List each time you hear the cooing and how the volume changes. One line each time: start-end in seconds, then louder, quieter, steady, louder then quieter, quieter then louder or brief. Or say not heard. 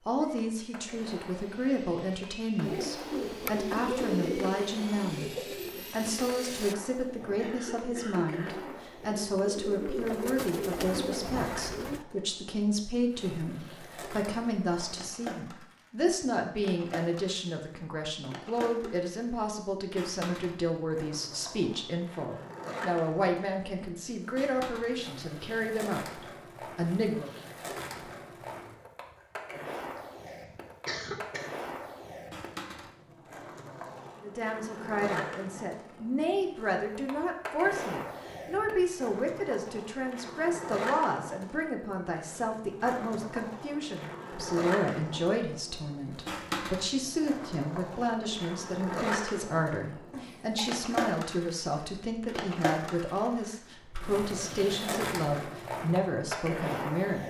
2.6-12.1 quieter then louder.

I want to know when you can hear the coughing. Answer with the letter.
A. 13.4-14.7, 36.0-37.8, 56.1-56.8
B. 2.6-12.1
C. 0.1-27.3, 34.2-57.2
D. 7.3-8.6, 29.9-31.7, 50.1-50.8
D.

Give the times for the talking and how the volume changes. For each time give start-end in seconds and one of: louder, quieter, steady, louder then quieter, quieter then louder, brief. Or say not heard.
0.1-27.3 steady
34.2-57.2 steady.